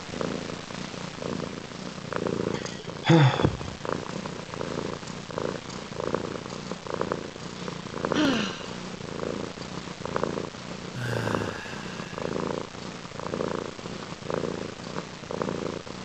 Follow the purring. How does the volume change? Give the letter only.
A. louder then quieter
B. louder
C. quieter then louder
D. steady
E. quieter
D.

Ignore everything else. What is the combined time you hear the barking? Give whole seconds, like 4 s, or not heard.
not heard.